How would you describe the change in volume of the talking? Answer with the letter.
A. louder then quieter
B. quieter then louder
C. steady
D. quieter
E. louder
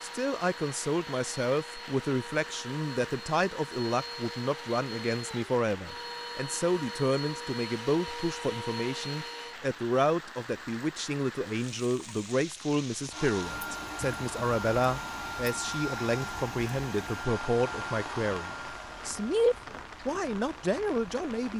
C.